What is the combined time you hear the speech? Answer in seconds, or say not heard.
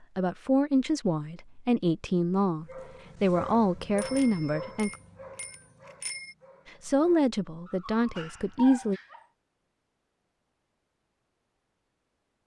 7 s.